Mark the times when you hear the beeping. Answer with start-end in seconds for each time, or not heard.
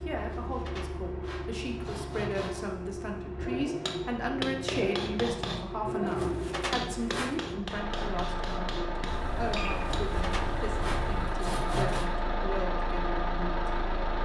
9.1-11.3.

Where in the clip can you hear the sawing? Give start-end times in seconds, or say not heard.
0.1-2.6, 6.0-7.5, 10.0-12.1.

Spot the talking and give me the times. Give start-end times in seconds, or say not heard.
0.1-13.8.